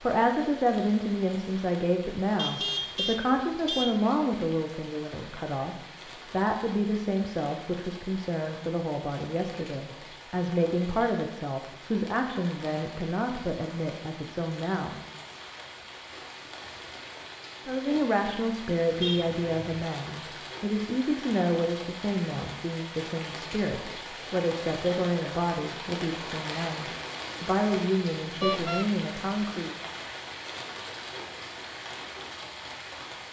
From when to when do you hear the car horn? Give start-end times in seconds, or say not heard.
2.4-4.0, 19.0-19.8, 28.4-28.9.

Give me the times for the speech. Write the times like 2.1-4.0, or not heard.
0.0-14.9, 17.6-29.8.